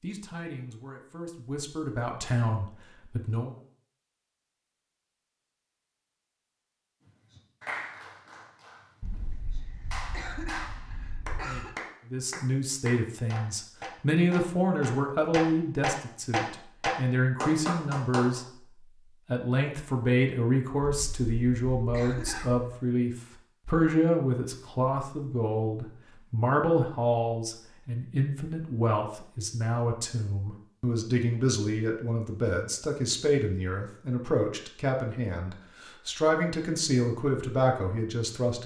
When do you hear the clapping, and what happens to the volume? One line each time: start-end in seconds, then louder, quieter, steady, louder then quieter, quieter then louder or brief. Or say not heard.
7.0-18.4 louder.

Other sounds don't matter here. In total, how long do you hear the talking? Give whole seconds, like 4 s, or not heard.
29 s.